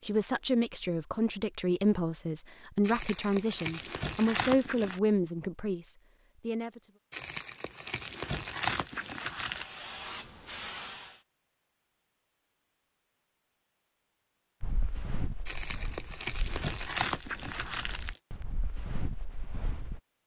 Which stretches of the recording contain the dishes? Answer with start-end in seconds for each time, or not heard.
not heard.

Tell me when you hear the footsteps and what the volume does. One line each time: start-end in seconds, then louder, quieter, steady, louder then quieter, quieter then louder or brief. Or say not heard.
14.6-20.0 quieter then louder.